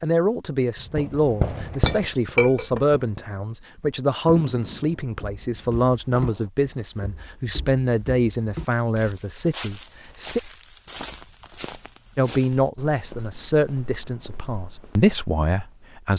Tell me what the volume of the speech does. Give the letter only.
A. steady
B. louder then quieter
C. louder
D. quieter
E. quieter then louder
A.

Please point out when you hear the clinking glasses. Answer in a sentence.
You can hear the clinking glasses from 1.9 to 2.8 s.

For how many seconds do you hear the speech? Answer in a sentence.
You can hear the speech for 14 seconds altogether.